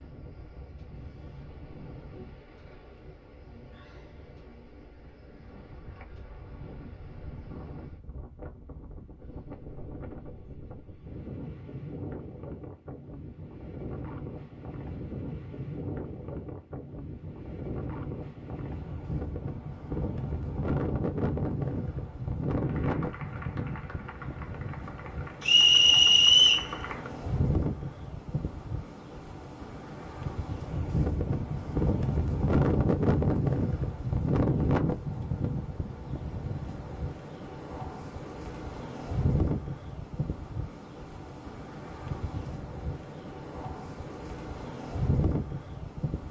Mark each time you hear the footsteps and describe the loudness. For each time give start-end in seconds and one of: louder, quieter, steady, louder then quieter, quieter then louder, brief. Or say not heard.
not heard.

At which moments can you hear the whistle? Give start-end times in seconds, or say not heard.
25.4-26.7.